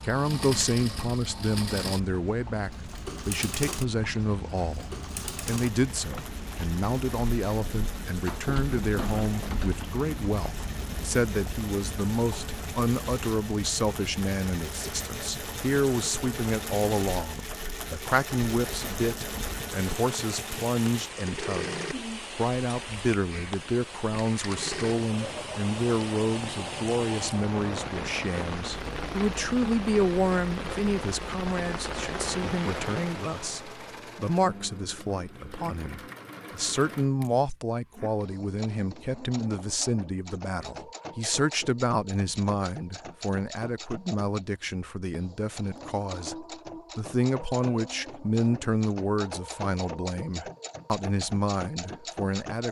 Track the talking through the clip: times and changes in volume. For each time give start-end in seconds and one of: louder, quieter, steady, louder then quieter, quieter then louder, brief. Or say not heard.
0.0-52.6 steady.